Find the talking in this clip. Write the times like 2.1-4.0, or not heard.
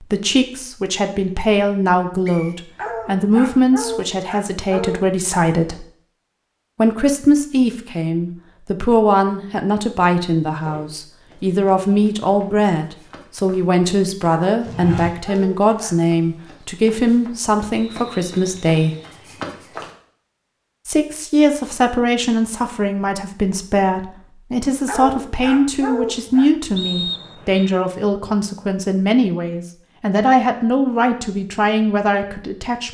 0.0-5.8, 6.8-18.9, 20.9-32.8.